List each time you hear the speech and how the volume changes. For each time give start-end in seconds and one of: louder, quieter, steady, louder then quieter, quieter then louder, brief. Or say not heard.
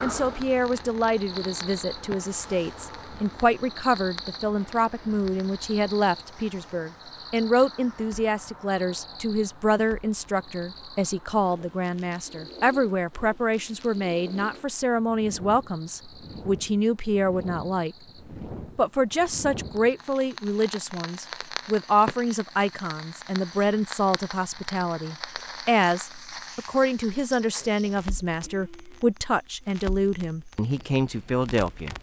0.0-17.9 steady
18.8-31.9 steady.